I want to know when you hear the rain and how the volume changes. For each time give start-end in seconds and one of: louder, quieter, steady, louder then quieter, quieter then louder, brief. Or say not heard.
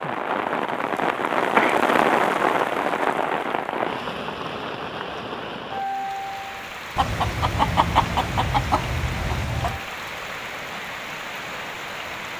0.0-12.3 quieter.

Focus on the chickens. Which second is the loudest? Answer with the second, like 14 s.
8 s.